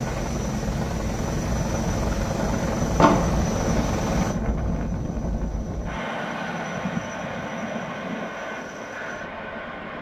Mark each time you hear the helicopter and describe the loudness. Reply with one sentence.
You can hear the helicopter from 0.0 to 9.9 s, getting quieter.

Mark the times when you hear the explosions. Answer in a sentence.
You can hear the explosions from 3.0 to 3.4 s.